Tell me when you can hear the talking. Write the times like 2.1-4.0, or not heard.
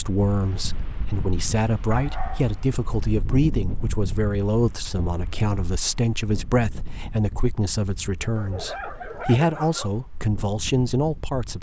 0.0-11.5.